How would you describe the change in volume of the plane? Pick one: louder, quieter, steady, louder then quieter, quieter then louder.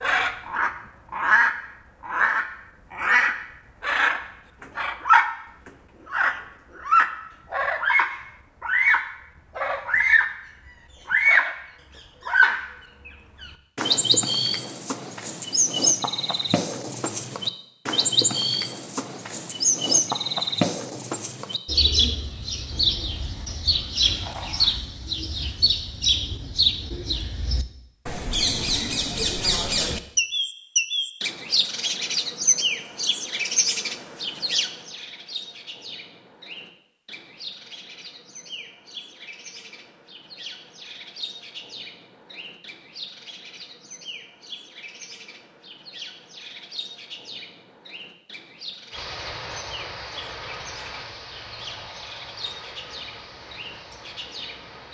quieter.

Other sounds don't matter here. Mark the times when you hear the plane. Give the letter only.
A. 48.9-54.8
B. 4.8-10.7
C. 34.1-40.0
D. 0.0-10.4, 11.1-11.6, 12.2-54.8
A.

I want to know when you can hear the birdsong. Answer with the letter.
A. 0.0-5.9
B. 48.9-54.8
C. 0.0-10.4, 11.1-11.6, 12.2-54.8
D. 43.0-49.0
C.